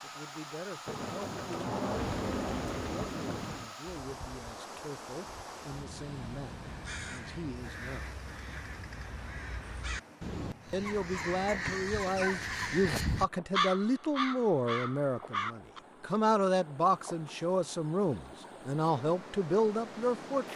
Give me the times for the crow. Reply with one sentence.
The crow can be heard from 6.6 to 15.8 s.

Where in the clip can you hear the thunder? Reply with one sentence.
You can hear the thunder from 0.8 to 3.7 s.